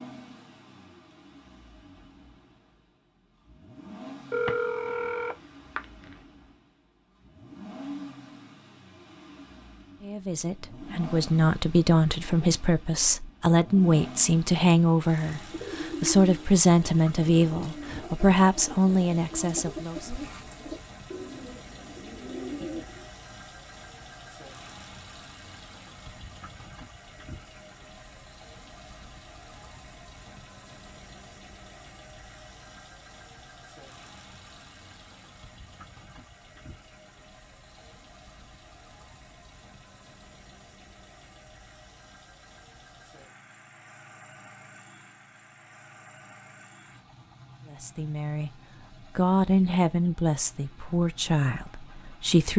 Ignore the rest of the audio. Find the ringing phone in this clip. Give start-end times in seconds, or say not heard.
4.3-6.2.